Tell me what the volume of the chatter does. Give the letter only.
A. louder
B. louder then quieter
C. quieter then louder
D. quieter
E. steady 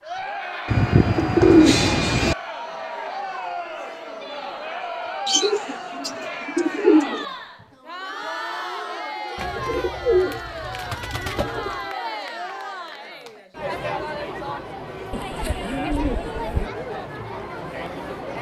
E.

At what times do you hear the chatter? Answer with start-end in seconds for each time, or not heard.
0.0-18.3.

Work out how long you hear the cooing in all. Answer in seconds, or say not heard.
8 s.